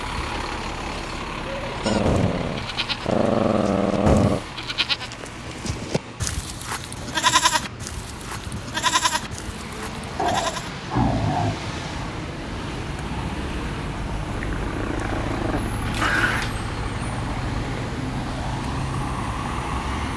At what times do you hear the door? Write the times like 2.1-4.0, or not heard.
not heard.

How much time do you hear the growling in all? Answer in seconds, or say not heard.
6 s.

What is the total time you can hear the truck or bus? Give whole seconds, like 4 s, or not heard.
20 s.